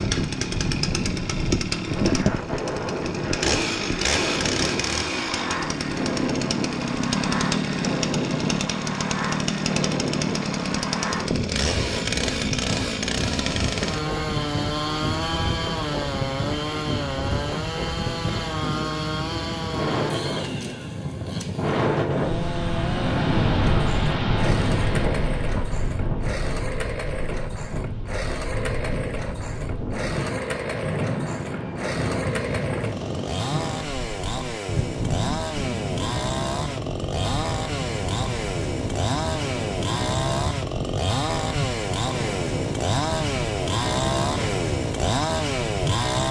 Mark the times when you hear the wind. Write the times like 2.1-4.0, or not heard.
0.0-46.2.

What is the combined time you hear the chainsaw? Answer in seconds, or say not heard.
46 s.